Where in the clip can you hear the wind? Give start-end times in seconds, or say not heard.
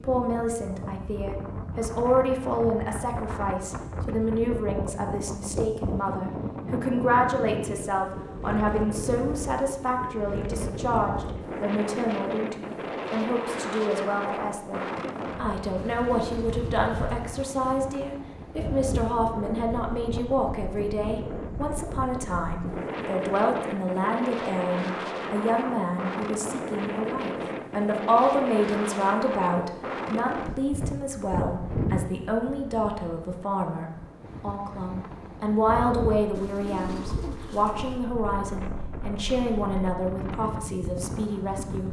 0.0-41.8.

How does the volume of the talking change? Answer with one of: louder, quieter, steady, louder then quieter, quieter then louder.
steady.